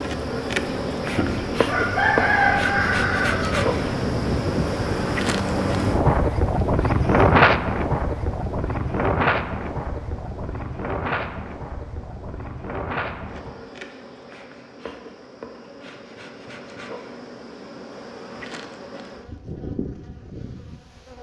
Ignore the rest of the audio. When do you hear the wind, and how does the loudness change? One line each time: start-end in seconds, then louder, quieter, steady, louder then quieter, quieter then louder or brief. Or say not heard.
0.0-13.7 louder then quieter.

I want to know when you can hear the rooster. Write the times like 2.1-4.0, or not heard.
1.1-4.1.